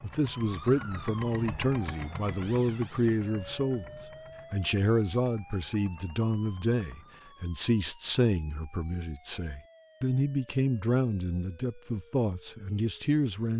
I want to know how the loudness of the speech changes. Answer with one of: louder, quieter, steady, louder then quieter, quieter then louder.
steady.